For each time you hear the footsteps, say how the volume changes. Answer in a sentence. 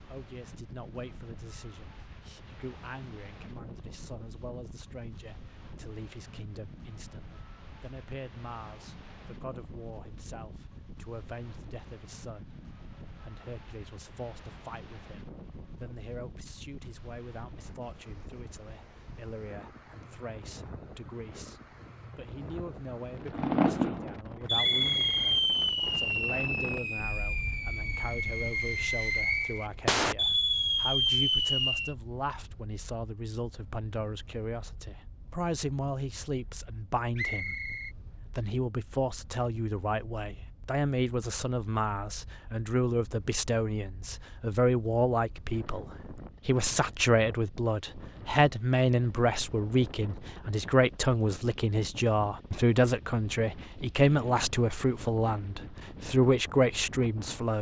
You can't hear the footsteps here.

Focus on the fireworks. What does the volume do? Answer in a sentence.
The loudness of the fireworks goes down, then up.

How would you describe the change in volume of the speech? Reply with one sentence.
The volume of the speech goes up.